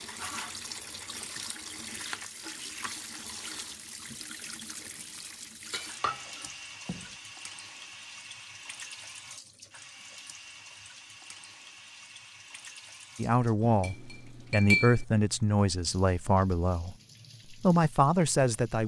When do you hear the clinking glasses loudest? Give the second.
15 s.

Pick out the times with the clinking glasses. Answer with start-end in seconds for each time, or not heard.
5.7-7.0, 13.6-15.1.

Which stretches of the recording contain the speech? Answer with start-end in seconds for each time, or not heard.
13.2-18.8.